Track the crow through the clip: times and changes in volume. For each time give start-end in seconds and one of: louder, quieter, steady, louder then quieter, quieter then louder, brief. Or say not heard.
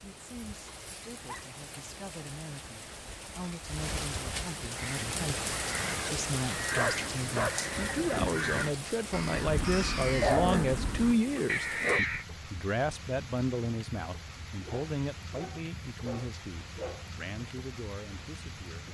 4.7-12.2 louder.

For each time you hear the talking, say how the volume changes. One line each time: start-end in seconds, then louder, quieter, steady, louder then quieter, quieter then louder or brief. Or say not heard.
0.0-18.8 louder then quieter.